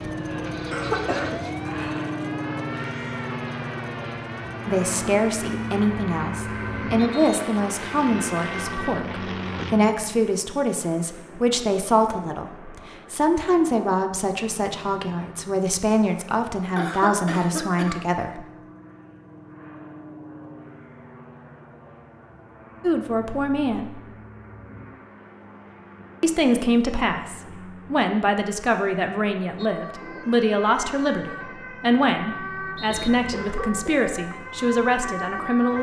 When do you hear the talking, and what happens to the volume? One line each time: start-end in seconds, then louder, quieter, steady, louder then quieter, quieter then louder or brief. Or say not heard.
4.7-18.4 steady
22.8-24.0 brief
26.2-35.7 steady.